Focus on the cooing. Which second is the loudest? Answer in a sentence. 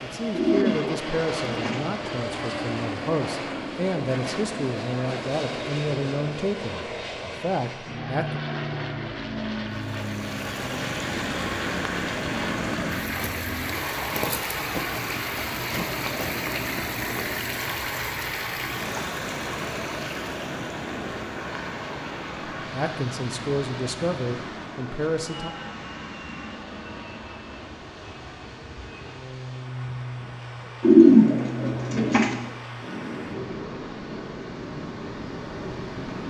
The volume of the cooing peaks at 31 seconds.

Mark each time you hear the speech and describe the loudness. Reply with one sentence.
The speech can be heard from 0.0 to 8.4 s, at a steady volume; and briefly from 22.7 to 25.5 s.